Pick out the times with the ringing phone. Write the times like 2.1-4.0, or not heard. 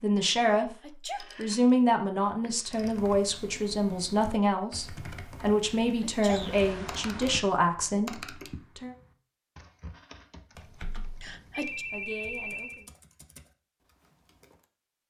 1.1-1.6, 2.4-3.0, 6.2-7.5, 10.6-12.8.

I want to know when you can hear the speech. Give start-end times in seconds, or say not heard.
0.0-8.9, 11.6-12.9.